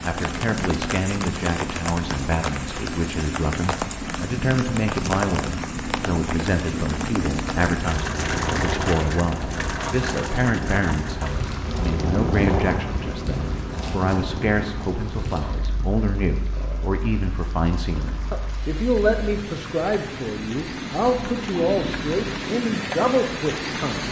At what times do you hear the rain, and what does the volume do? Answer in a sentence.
The rain can be heard from 0.0 to 24.0 s, getting quieter then louder.